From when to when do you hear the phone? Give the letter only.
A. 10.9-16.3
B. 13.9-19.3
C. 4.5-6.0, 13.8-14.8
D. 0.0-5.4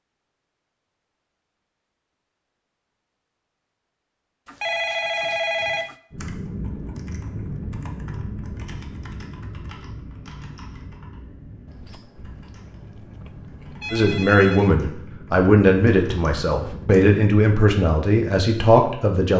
C.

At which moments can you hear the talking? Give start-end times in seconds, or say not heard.
13.9-19.3.